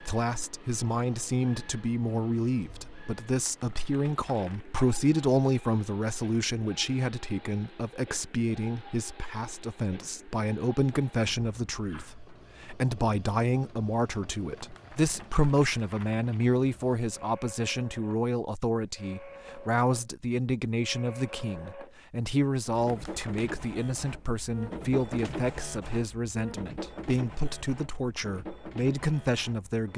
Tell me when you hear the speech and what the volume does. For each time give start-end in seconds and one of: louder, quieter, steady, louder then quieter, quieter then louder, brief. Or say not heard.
0.0-29.9 steady.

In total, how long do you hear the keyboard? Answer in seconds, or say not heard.
not heard.